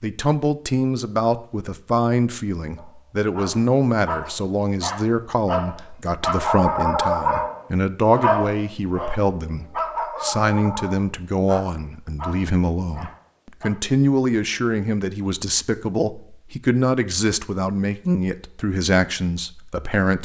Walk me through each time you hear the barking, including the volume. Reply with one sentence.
The barking can be heard from 2.8 to 13.7 s, getting louder then quieter.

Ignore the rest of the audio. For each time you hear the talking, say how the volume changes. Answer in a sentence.
You can hear the talking from 0.0 to 20.1 s, at a steady volume.